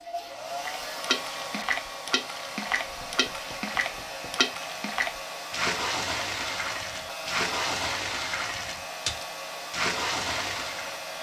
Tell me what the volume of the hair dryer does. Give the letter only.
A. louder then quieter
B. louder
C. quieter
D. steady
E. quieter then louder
D.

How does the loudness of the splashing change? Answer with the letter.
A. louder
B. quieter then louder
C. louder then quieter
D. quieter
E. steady
E.